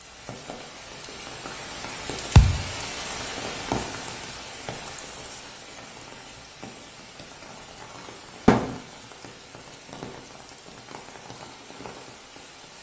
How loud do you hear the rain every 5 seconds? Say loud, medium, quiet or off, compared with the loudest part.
loud, medium, medium.